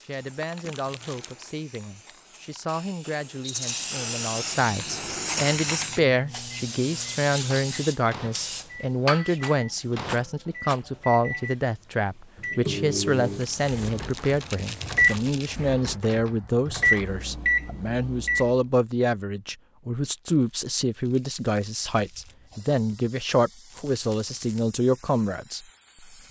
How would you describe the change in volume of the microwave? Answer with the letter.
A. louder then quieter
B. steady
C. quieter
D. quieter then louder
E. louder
E.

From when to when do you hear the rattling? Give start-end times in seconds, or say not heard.
3.4-3.9, 9.4-10.8, 23.7-24.6.